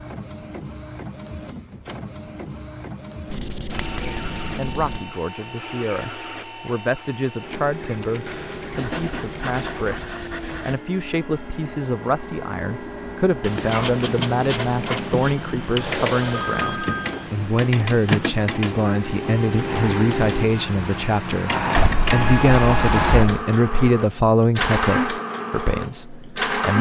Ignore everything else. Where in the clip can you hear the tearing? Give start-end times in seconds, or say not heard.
not heard.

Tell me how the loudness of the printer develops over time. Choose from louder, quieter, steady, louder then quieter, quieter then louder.
louder.